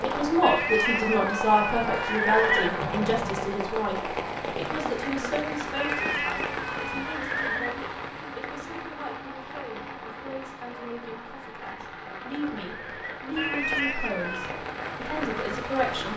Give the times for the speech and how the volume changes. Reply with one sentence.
You can hear the speech from 0.0 to 16.1 s, getting quieter then louder.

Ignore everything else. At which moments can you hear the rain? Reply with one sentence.
You can hear the rain from 0.0 to 16.1 s.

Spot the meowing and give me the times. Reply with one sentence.
You can hear the meowing from 0.4 to 2.7 s, from 5.7 to 7.2 s and from 13.3 to 14.6 s.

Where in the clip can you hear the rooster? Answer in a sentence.
The rooster can't be heard in this clip.